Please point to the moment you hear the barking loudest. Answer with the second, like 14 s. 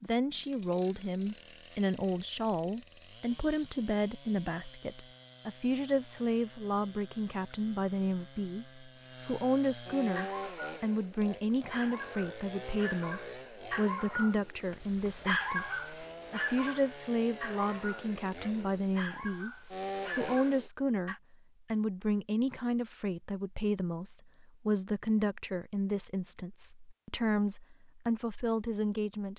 15 s.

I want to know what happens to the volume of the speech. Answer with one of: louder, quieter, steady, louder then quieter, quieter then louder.
steady.